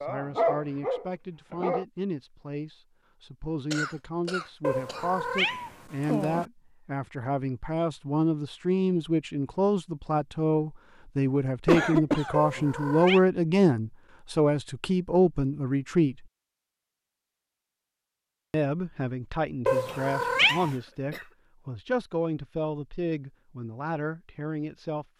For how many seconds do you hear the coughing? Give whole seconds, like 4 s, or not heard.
4 s.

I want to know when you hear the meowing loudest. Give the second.
20 s.